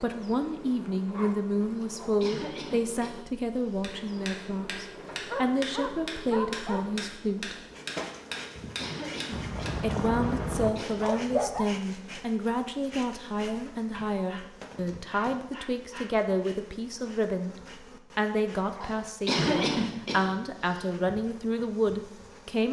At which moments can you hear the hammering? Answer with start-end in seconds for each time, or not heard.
3.7-10.8.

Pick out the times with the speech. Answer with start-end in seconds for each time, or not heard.
0.0-7.5, 9.8-17.6, 18.1-22.6.